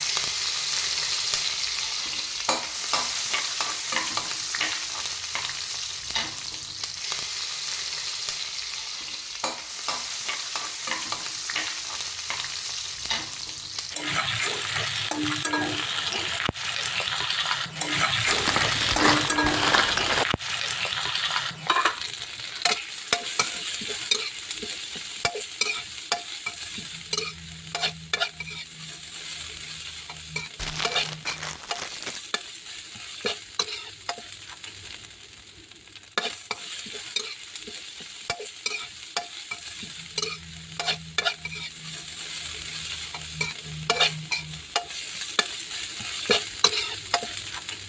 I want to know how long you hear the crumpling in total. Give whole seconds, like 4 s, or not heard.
4 s.